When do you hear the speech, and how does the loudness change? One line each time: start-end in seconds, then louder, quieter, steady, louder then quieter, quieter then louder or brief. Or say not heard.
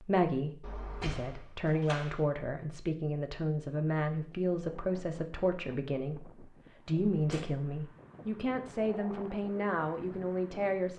0.0-10.9 steady.